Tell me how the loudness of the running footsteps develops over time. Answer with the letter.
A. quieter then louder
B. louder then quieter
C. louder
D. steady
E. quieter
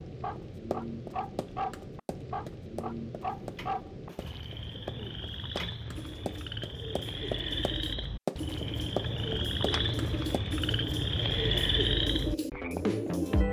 C.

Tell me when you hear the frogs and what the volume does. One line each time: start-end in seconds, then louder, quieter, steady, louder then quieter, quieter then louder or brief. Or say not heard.
0.0-13.4 louder.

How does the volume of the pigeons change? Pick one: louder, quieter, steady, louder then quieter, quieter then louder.
louder.